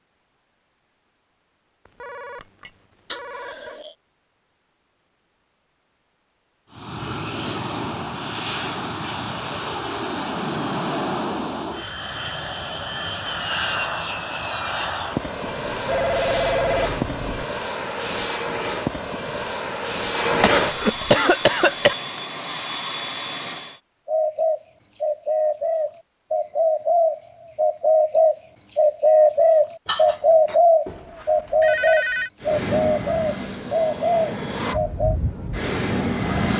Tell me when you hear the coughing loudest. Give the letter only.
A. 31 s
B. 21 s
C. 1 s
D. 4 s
B.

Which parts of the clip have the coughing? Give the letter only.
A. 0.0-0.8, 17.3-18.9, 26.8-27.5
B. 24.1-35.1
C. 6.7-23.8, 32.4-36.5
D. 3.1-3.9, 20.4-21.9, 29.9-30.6
D.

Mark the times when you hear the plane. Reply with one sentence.
The plane can be heard from 6.7 to 23.8 s and from 32.4 to 36.5 s.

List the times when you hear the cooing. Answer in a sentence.
The cooing can be heard from 24.1 to 35.1 s.